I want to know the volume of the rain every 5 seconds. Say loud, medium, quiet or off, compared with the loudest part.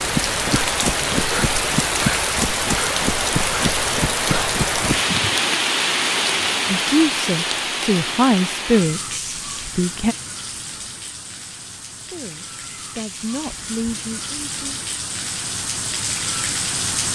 loud, loud, quiet, medium.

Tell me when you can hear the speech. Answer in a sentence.
You can hear the speech from 6.7 to 10.2 s and from 11.9 to 14.8 s.